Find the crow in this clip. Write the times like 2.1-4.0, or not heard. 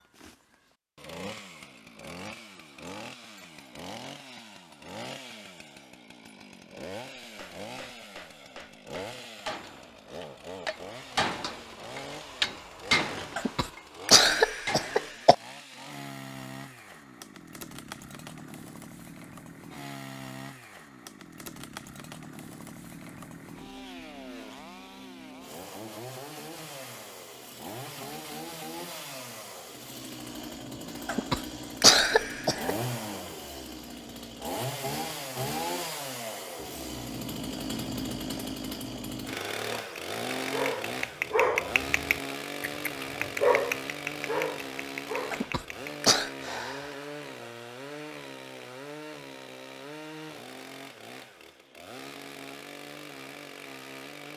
not heard.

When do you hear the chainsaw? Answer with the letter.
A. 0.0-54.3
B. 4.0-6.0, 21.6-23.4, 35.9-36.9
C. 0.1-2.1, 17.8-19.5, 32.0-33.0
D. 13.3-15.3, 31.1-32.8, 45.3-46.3
A.